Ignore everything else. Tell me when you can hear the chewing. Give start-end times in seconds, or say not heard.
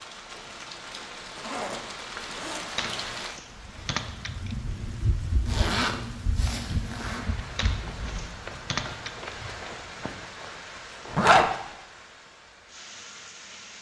not heard.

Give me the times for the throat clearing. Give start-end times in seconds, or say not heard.
not heard.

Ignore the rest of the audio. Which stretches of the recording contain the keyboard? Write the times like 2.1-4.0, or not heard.
2.8-4.5, 7.5-9.3.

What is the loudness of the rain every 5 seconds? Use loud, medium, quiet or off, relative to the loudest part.
loud, loud, medium.